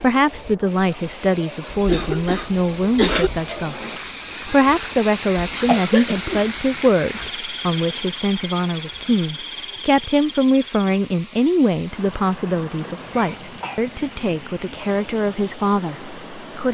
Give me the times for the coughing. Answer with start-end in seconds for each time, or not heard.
1.7-3.3, 5.7-6.5, 13.0-13.8.